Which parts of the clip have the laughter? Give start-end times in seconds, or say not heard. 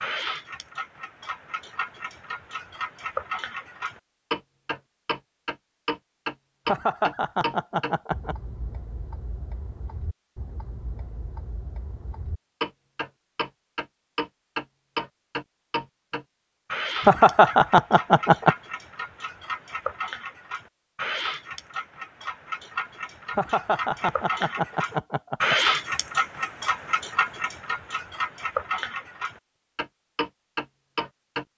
6.7-8.3, 17.1-18.6, 23.4-25.6.